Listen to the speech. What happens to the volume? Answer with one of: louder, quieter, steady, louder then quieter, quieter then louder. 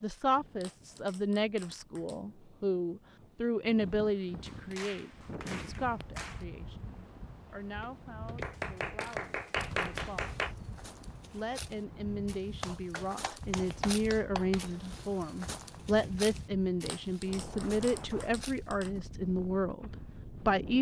quieter then louder.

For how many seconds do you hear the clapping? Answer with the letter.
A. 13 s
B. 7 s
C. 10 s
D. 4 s
C.